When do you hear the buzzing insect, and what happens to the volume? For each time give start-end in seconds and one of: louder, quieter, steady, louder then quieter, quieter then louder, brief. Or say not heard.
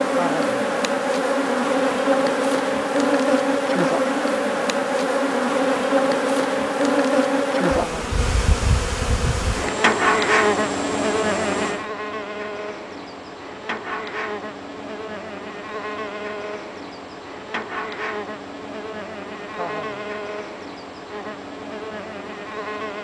0.0-22.9 quieter.